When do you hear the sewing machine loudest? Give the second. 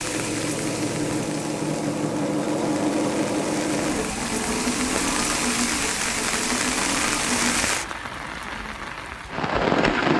3 s.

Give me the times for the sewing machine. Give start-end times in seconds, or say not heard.
0.0-8.0.